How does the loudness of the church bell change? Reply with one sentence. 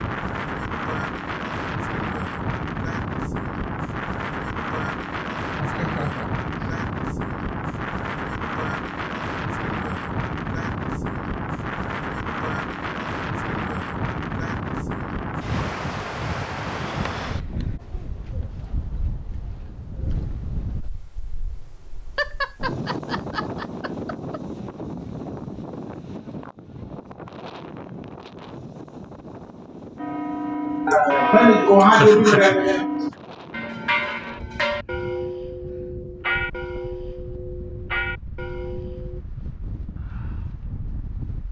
The loudness of the church bell goes down.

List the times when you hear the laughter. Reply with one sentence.
The laughter can be heard from 5.5 to 6.7 s, from 22.1 to 24.4 s and from 30.9 to 33.1 s.